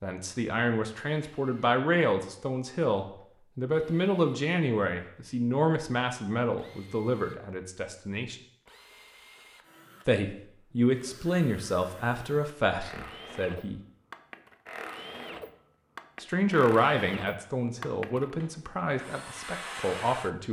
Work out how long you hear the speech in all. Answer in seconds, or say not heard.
16 s.